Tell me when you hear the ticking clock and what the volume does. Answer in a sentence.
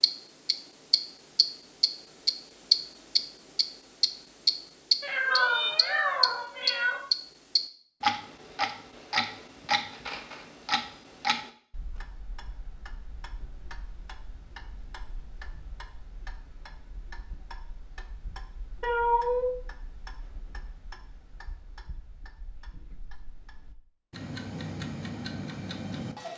You can hear the ticking clock from 0.0 to 26.3 s, getting quieter then louder.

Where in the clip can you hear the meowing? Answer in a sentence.
You can hear the meowing from 5.0 to 7.0 s and from 18.8 to 19.5 s.